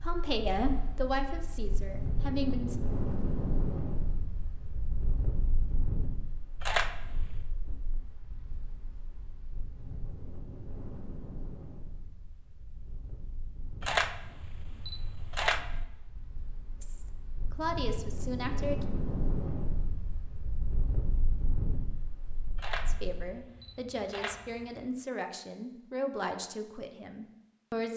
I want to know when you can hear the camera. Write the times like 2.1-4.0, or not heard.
6.6-7.5, 13.8-15.8, 22.6-24.9.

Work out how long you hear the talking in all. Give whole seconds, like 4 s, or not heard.
10 s.